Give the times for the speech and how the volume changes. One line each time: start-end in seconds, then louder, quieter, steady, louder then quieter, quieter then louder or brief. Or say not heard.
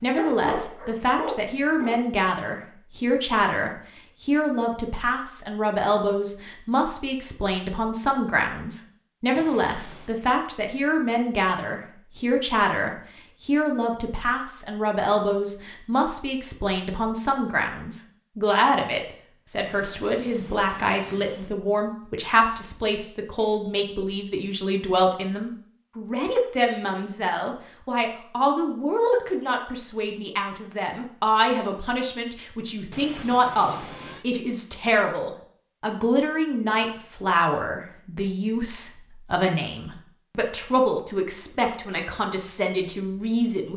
0.0-43.7 steady.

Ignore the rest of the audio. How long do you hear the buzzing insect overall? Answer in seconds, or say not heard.
not heard.